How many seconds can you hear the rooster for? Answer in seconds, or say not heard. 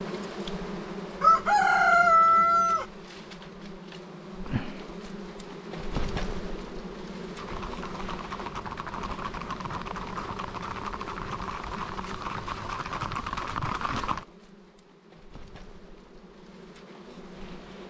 2 s.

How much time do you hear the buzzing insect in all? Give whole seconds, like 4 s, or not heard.
18 s.